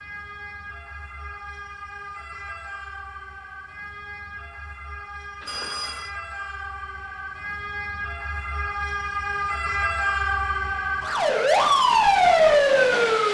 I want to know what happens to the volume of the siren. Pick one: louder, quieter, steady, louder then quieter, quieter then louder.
louder.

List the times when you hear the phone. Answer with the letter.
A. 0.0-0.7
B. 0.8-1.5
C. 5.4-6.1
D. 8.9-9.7
C.